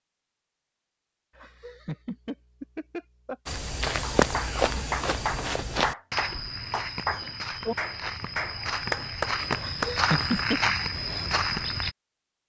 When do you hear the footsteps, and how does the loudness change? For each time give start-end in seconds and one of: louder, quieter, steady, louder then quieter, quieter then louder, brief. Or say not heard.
3.5-11.9 quieter then louder.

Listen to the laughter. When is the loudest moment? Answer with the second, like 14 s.
10 s.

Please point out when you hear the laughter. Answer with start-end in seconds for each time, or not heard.
1.4-3.4, 9.6-10.6.